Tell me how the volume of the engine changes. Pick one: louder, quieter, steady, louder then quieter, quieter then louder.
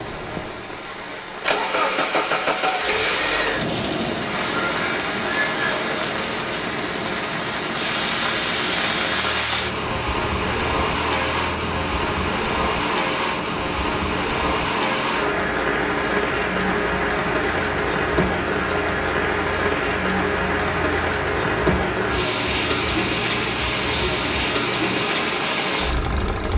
quieter.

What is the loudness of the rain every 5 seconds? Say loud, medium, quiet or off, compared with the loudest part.
medium, loud, loud, loud, loud, loud.